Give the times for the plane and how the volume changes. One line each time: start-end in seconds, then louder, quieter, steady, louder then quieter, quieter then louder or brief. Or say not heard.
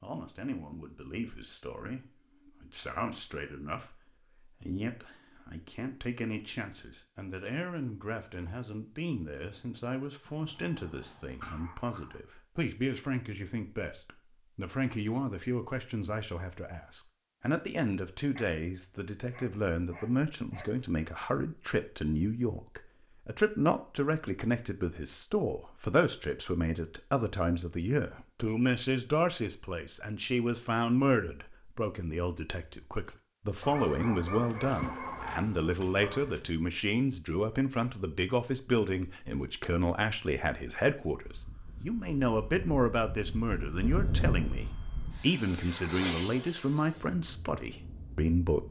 41.2-48.6 louder then quieter.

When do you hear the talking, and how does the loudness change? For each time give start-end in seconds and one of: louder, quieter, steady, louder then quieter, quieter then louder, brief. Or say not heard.
0.0-48.6 louder.